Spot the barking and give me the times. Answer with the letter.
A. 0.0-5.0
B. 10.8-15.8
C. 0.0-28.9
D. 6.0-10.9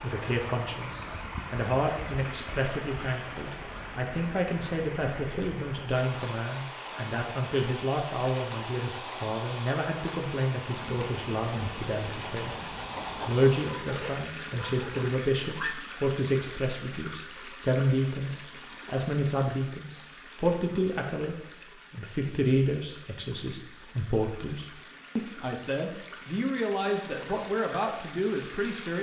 B.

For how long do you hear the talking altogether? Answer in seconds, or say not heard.
29 s.